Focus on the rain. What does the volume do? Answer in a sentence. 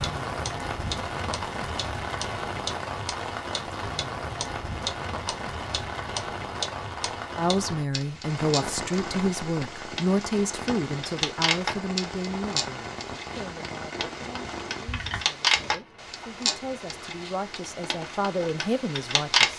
The loudness of the rain goes down.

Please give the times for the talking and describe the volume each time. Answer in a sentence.
The talking can be heard from 7.3 to 19.5 s, getting quieter then louder.